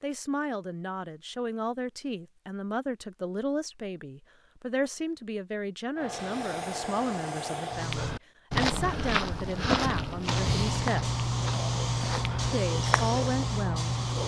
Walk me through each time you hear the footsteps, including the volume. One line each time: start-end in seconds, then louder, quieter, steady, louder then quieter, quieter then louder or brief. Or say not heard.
7.8-13.2 quieter.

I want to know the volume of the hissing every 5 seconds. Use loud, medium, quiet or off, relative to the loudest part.
off, medium, loud.